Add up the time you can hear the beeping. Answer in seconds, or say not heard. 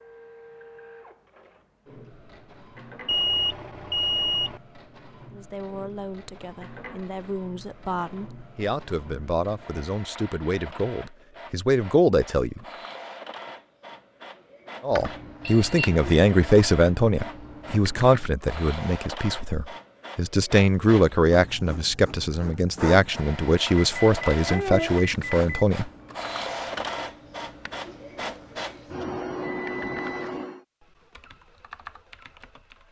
4 s.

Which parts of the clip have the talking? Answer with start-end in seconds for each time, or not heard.
5.3-12.6, 14.8-25.9.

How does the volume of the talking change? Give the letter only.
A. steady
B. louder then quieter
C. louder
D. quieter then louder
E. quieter
C.